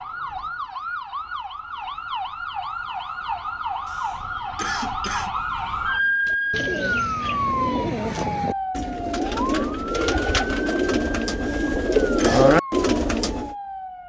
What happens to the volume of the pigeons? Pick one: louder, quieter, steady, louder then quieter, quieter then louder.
louder.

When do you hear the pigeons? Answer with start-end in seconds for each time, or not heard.
6.2-13.6.